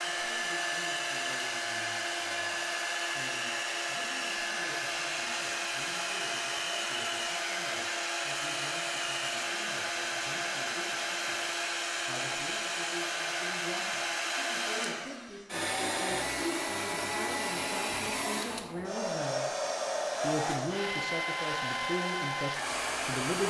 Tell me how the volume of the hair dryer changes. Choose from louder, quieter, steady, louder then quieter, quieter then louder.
steady.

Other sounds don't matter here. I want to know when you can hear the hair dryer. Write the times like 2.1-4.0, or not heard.
0.0-23.4.